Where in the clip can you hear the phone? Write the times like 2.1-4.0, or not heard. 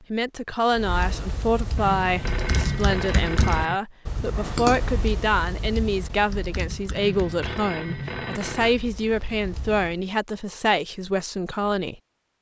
1.8-3.8, 7.0-8.8.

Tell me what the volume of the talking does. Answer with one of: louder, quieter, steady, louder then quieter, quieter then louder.
steady.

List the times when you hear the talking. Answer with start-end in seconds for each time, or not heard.
0.1-11.9.